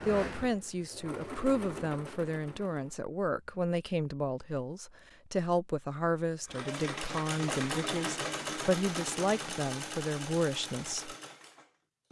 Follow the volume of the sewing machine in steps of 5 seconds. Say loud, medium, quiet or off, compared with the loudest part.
medium, loud, medium.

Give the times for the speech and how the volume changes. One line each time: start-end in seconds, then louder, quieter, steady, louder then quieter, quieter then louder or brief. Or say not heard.
0.1-11.2 steady.